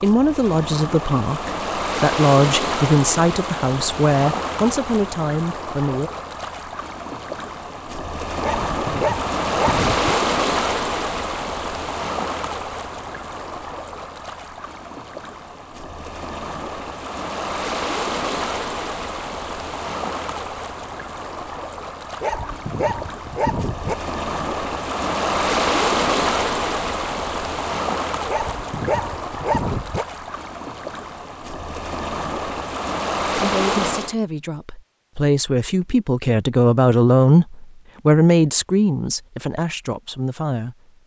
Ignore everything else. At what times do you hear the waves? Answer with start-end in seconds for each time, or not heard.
0.0-34.1.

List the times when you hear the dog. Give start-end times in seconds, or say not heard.
8.4-10.2, 22.2-23.9, 28.2-30.1.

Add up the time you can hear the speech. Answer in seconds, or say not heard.
14 s.